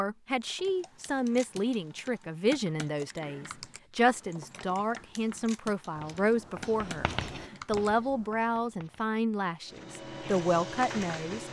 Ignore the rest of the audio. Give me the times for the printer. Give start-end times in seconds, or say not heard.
9.7-11.4.